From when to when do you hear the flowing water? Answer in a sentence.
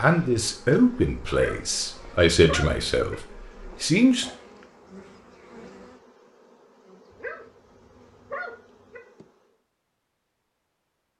The flowing water can't be heard in this clip.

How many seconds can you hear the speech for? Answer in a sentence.
The speech can be heard for 4 seconds in total.